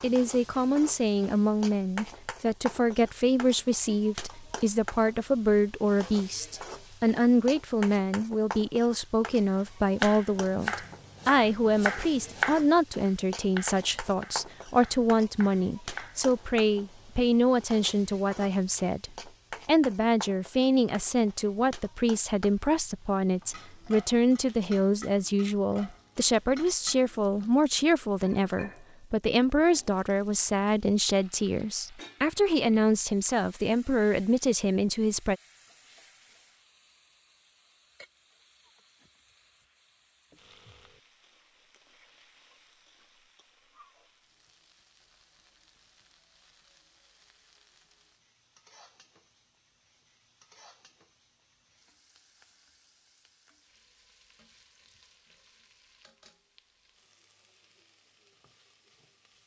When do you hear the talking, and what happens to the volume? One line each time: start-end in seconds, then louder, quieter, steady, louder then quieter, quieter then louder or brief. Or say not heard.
0.0-35.4 steady.